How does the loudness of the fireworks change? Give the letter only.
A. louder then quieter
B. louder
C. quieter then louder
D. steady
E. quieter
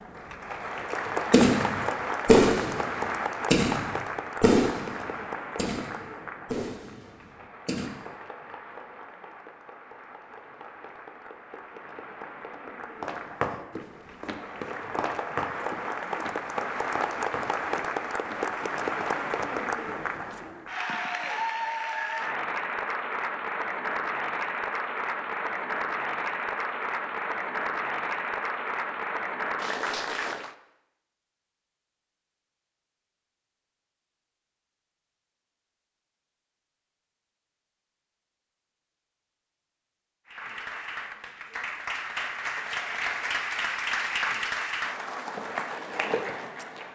E.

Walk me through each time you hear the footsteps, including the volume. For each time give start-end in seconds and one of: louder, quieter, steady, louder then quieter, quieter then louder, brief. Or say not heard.
13.0-20.9 quieter.